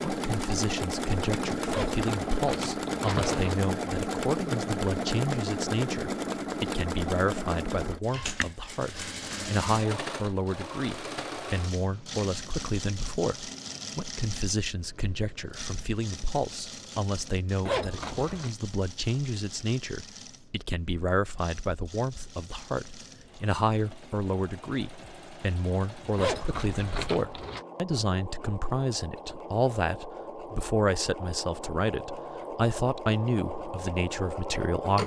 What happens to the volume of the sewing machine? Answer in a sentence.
The volume of the sewing machine goes down, then up.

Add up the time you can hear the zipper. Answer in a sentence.
The zipper can be heard for 4 seconds in total.